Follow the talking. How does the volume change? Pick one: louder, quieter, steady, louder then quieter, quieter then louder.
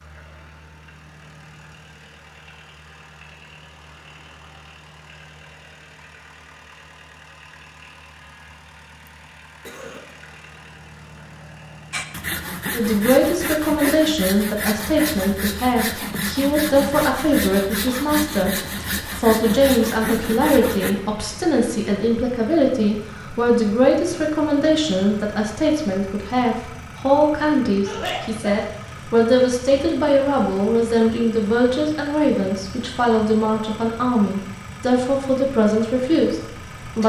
steady.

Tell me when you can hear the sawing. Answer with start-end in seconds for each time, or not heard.
11.9-20.9.